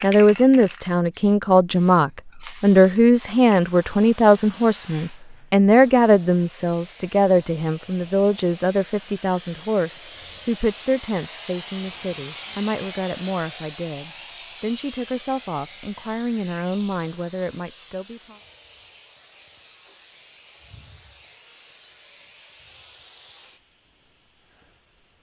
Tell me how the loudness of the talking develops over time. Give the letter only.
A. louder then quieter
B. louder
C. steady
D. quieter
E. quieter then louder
D.